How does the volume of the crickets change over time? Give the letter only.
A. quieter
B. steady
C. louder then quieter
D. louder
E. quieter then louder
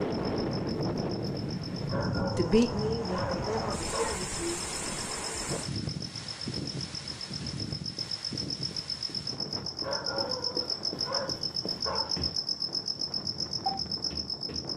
D.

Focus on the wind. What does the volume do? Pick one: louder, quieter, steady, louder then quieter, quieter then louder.
quieter.